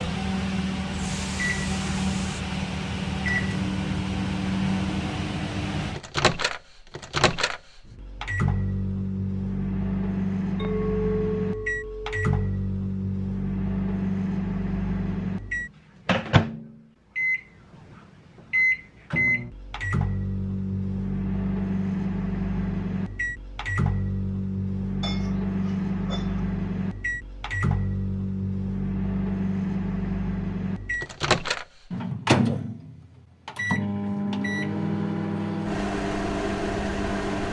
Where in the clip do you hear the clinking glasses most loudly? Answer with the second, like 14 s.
11 s.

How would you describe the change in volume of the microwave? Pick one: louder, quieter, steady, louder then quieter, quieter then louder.
steady.